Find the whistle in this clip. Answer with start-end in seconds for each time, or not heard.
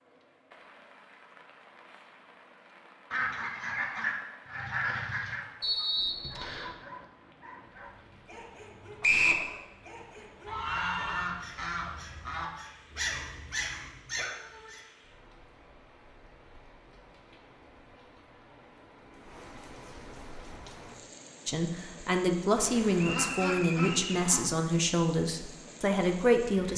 5.6-6.7, 9.0-9.4, 23.0-24.2.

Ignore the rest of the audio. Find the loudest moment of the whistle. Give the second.
9 s.